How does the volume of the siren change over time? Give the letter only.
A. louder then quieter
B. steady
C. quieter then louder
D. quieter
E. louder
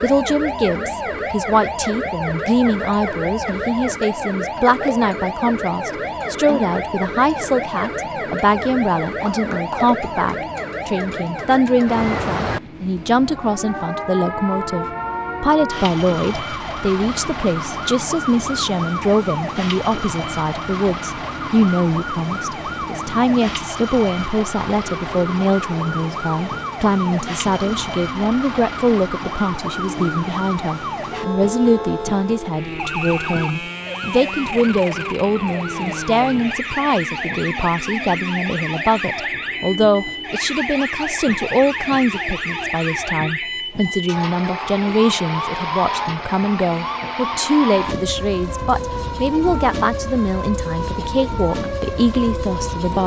B.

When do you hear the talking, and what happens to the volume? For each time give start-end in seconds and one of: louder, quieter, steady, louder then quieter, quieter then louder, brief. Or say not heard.
0.0-53.0 steady.